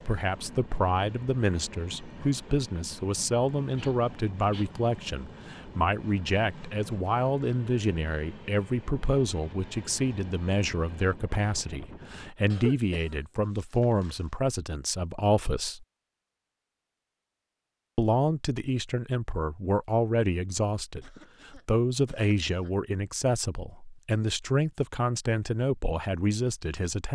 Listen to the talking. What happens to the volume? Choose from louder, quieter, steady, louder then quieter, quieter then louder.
steady.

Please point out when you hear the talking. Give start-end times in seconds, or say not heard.
0.1-15.8, 17.9-27.1.